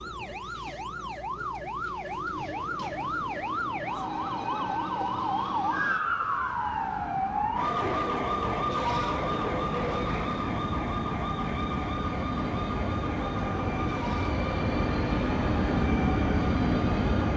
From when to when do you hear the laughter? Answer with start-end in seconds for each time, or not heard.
not heard.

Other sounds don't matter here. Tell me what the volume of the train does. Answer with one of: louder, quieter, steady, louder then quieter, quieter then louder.
louder.